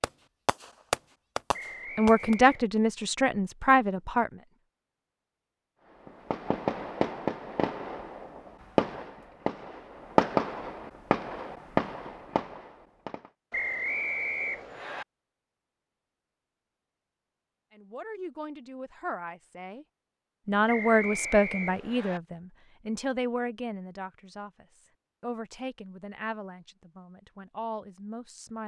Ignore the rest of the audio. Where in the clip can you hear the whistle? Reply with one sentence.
The whistle can be heard from 1.5 to 2.6 s, from 13.5 to 15.1 s and from 20.6 to 22.2 s.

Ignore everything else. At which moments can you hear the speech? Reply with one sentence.
The speech can be heard from 1.9 to 4.3 s, from 17.7 to 19.9 s and from 20.4 to 28.6 s.